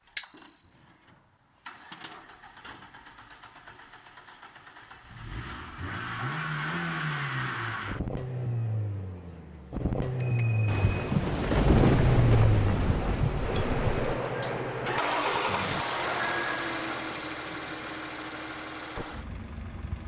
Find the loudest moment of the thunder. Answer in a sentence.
The volume of the thunder peaks at 12 seconds.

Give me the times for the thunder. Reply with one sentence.
You can hear the thunder from 10.7 to 14.2 s.